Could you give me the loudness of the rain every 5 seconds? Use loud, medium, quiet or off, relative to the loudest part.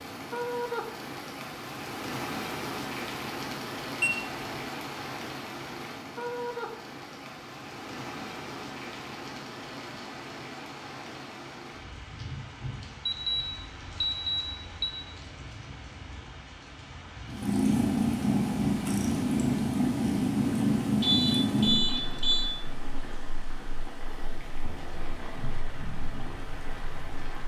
loud, loud, medium, medium, medium, medium.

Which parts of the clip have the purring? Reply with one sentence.
You can hear the purring from 17.2 to 27.4 s.